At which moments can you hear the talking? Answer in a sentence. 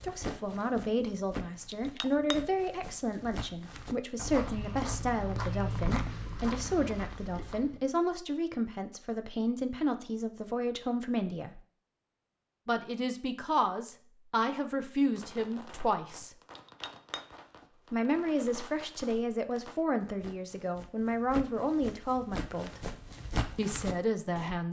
You can hear the talking from 0.0 to 11.6 s, from 12.7 to 16.3 s, from 17.9 to 22.9 s and from 23.6 to 24.6 s.